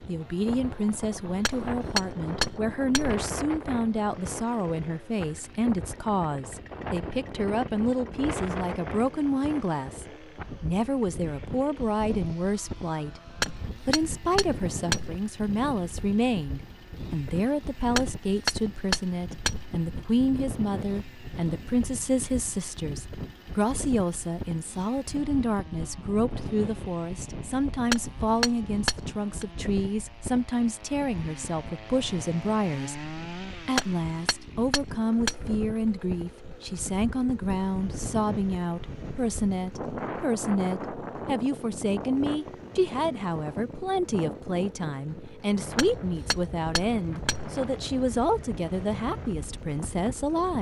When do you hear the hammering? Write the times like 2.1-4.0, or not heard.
1.4-3.1, 13.4-15.2, 17.9-19.6, 27.9-29.4, 33.8-35.5, 45.8-47.5.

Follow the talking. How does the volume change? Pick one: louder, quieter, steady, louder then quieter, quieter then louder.
steady.